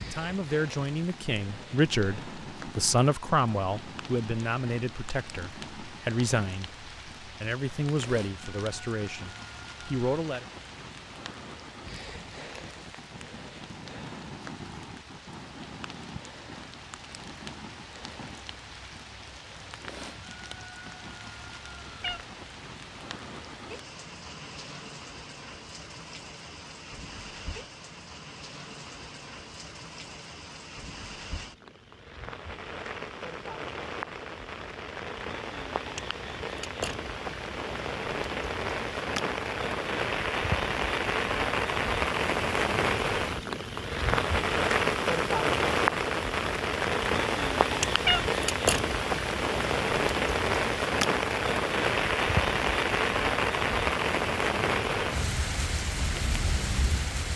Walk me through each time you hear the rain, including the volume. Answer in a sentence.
The rain can be heard from 0.0 to 57.3 s, getting louder.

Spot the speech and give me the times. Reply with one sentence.
The speech can be heard from 0.1 to 10.4 s.